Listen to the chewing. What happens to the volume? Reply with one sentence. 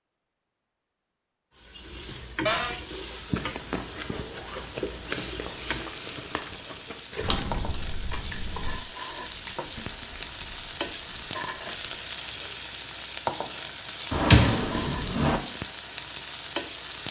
The volume of the chewing goes down.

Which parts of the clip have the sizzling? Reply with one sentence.
The sizzling can be heard from 1.6 to 17.0 s.